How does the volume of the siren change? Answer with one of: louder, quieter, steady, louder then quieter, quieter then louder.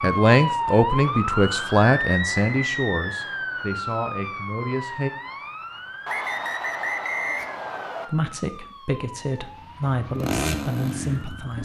quieter.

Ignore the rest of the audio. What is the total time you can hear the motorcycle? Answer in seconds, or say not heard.
2 s.